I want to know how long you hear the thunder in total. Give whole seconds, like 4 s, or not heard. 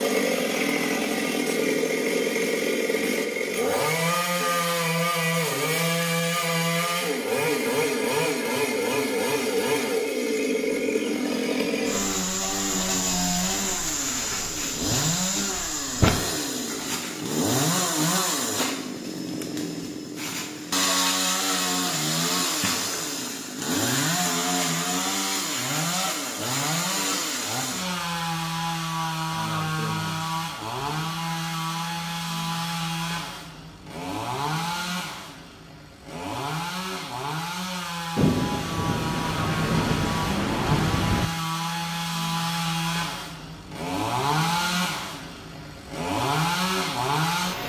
3 s.